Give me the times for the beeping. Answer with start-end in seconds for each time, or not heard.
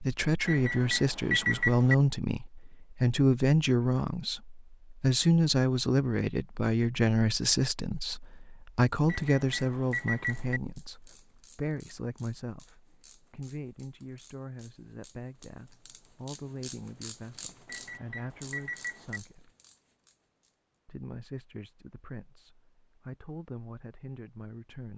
0.5-1.9, 9.1-10.6, 17.6-19.2.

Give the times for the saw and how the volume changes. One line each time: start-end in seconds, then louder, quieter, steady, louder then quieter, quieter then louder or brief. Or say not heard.
not heard.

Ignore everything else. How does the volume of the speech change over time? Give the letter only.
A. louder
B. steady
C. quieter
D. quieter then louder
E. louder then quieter
C.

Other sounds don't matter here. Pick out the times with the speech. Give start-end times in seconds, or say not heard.
0.0-19.5, 20.9-24.9.